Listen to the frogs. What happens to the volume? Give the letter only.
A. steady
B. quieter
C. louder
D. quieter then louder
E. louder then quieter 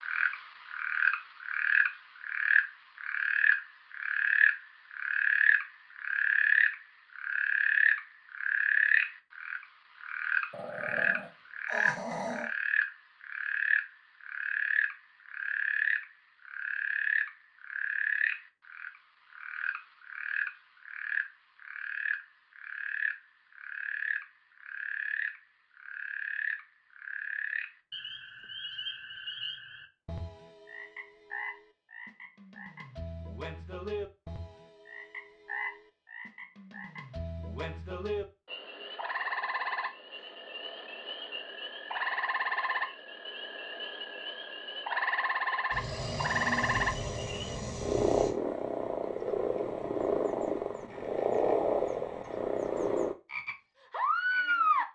D.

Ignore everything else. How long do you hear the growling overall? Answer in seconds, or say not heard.
5 s.